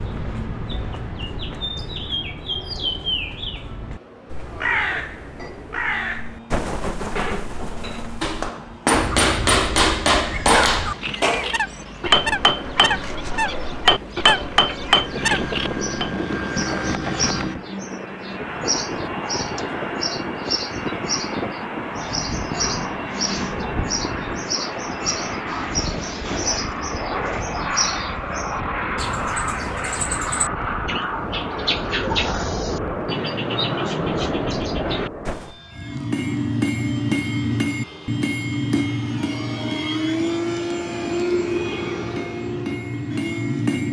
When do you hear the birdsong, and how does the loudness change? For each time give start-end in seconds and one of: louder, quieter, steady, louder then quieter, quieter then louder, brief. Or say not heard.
0.0-35.5 steady.